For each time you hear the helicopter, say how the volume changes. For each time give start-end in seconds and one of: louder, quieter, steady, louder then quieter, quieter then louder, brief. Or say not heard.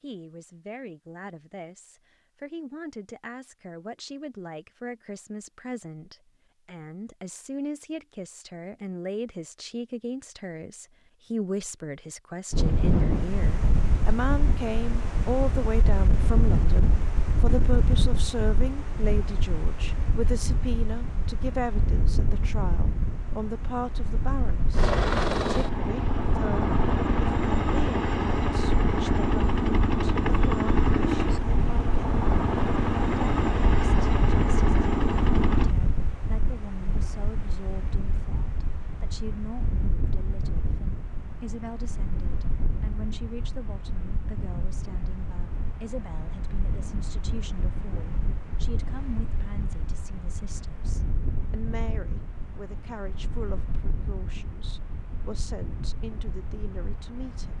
24.7-35.8 steady.